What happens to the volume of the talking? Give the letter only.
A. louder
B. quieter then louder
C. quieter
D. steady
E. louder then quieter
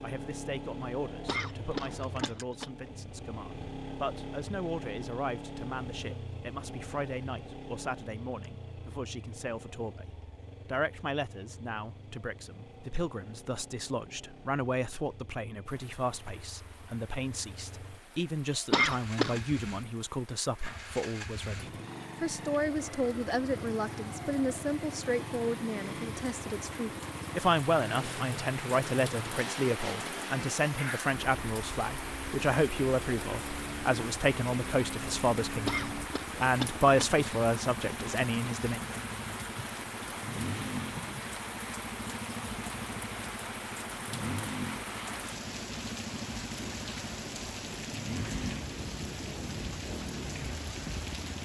A.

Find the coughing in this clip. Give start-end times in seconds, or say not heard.
1.2-2.7, 18.5-19.4, 35.5-37.2.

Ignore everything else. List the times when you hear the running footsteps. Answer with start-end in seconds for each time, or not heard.
not heard.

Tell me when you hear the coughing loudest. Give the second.
19 s.